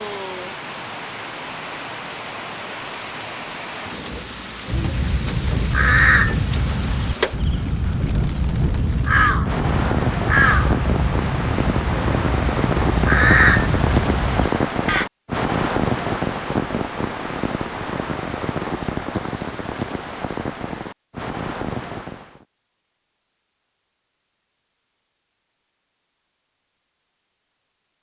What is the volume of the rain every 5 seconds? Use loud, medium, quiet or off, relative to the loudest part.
medium, medium, loud, loud, medium, off.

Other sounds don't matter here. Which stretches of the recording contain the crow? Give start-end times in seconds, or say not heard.
4.7-15.1.